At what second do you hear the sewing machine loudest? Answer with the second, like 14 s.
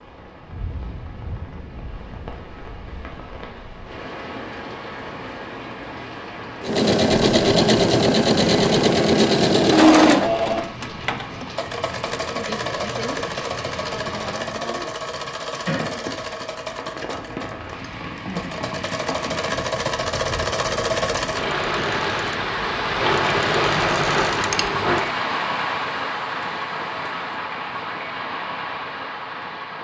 10 s.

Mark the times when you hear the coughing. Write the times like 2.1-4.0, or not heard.
not heard.